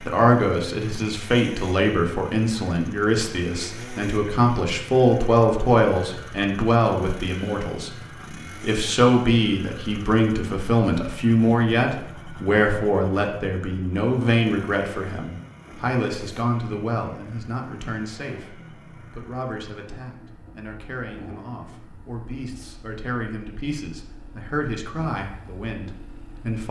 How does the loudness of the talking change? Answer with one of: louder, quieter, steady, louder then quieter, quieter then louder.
quieter.